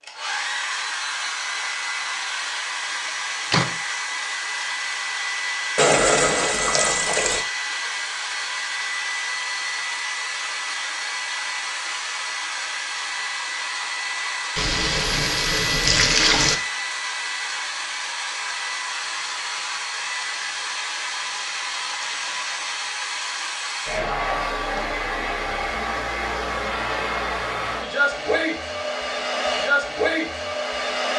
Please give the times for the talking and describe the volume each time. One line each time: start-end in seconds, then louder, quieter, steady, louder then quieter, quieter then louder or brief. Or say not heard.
not heard.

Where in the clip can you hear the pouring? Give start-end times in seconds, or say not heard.
5.8-7.5, 14.6-16.6, 21.9-22.7.